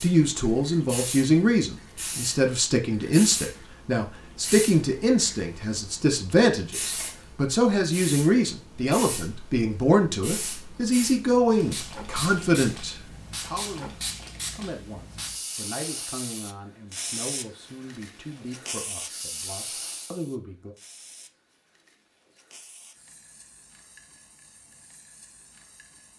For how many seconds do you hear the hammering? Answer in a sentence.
You can't hear the hammering here.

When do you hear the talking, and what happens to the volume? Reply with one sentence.
You can hear the talking from 0.0 to 20.8 s, getting quieter.